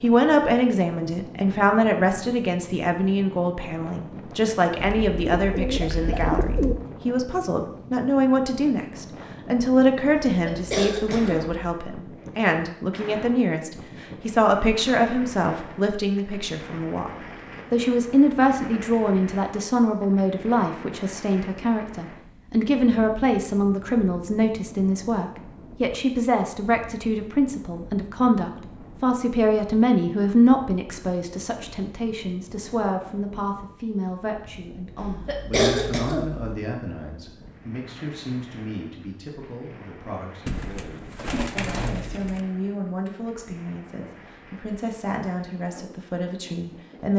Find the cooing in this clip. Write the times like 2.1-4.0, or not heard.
4.8-6.8, 40.5-42.4.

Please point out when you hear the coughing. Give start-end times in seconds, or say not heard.
10.2-11.5, 35.0-36.5.